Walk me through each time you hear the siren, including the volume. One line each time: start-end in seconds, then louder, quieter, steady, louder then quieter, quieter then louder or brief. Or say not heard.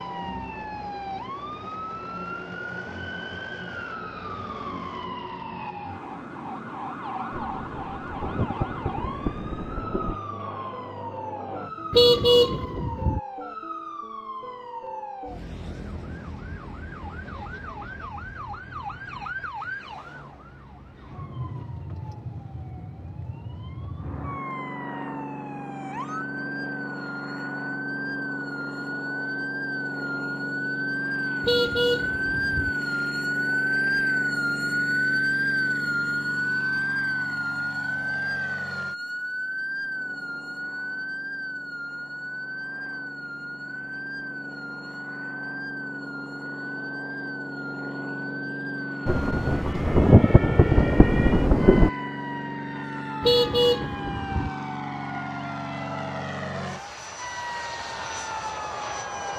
0.0-59.3 louder then quieter.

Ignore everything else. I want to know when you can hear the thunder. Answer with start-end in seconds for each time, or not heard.
7.3-10.2, 49.0-51.9.